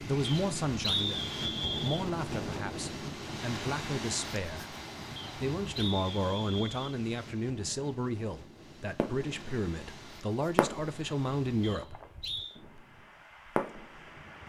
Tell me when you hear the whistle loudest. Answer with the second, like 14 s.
1 s.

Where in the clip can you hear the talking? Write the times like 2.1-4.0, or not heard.
0.0-4.8, 5.3-12.0.